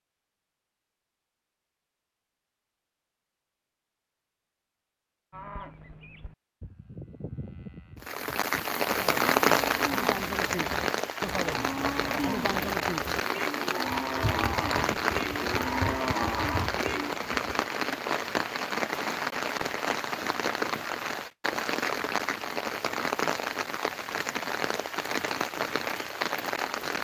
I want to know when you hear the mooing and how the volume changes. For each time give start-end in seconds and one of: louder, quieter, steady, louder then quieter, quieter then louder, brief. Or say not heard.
5.3-17.1 louder.